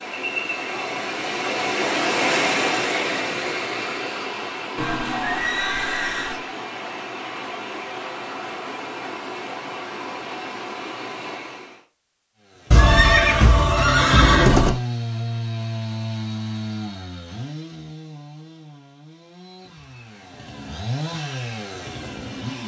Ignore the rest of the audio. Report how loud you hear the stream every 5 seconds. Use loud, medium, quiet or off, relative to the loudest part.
loud, medium, medium, off, off.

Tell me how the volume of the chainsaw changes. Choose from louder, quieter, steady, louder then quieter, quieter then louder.
quieter then louder.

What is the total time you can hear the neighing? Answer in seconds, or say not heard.
4 s.